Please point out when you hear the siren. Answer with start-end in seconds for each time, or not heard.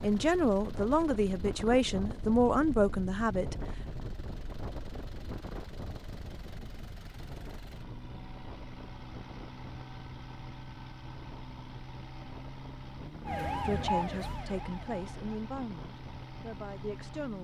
13.2-15.4.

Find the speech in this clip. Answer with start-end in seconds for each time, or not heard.
0.0-3.5, 13.6-17.3.